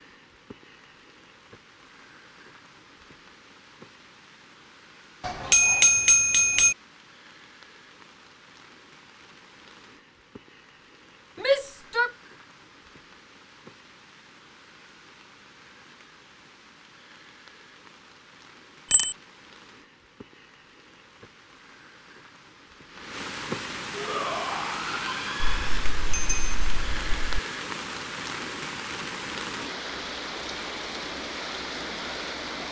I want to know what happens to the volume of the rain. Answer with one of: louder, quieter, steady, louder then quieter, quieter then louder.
louder.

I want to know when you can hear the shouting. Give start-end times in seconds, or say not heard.
11.3-12.2, 23.9-25.6.